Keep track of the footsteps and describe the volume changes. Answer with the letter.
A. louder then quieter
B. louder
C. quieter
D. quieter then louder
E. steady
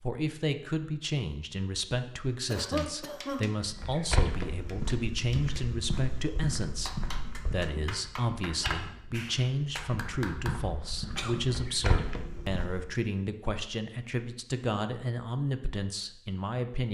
D.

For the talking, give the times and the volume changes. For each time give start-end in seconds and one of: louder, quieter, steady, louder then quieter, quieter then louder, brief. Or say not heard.
0.0-16.8 steady.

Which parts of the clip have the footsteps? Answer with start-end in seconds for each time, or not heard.
3.6-13.0.